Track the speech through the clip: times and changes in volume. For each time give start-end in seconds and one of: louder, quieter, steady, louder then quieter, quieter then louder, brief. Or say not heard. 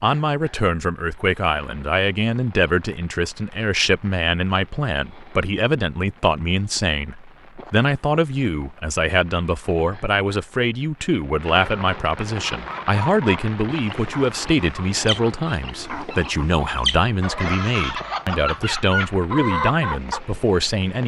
0.0-21.0 steady.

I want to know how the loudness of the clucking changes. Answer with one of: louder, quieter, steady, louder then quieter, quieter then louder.
louder.